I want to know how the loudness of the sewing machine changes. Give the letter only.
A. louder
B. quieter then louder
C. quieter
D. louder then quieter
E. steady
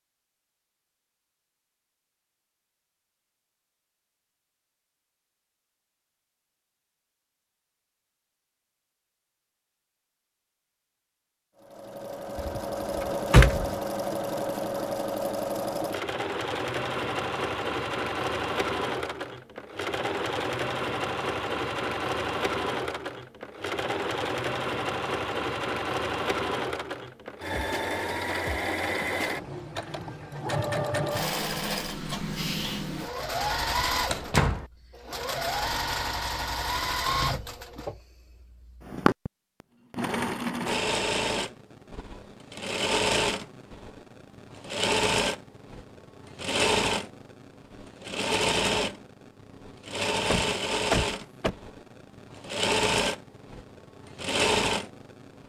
E.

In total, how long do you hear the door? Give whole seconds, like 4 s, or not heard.
3 s.